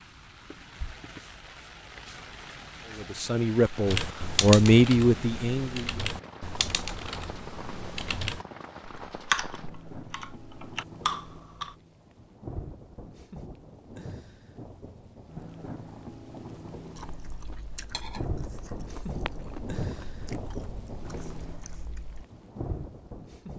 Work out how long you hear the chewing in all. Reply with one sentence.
You can hear the chewing for 5 seconds altogether.